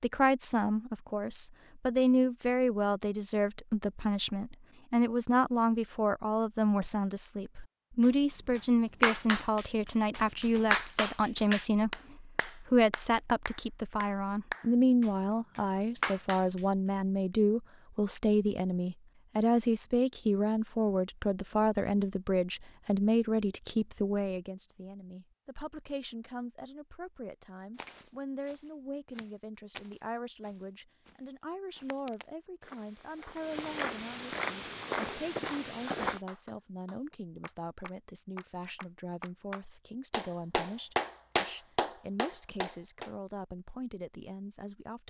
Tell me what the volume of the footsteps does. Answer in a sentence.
The loudness of the footsteps goes up.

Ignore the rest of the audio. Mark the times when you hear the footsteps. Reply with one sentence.
You can hear the footsteps from 27.8 to 36.2 s.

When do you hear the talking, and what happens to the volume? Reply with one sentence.
The talking can be heard from 0.0 to 45.0 s, getting quieter.